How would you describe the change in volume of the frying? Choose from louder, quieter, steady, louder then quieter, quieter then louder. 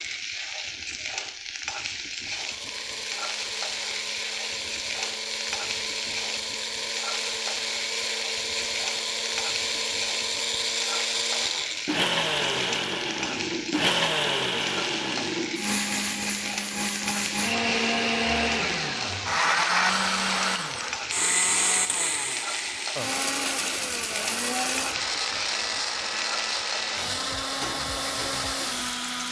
steady.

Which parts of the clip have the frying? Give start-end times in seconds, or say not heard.
0.0-29.2.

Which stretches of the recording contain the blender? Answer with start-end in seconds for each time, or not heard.
2.2-29.2.